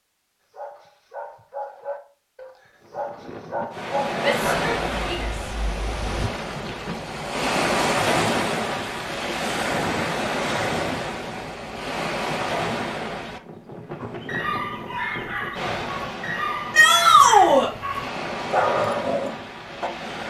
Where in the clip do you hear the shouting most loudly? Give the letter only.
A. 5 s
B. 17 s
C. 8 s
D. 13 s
B.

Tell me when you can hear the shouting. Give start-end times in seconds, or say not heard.
4.2-5.3, 16.7-17.7.